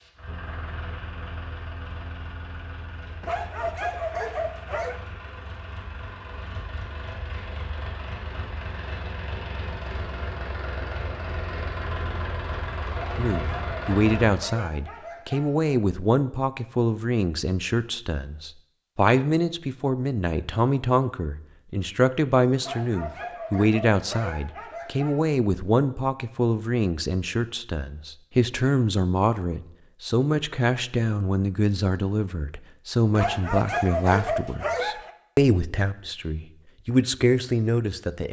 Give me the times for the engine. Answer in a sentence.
You can hear the engine from 0.0 to 14.4 s.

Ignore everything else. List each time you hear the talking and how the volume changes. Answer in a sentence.
You can hear the talking from 13.2 to 38.2 s, at a steady volume.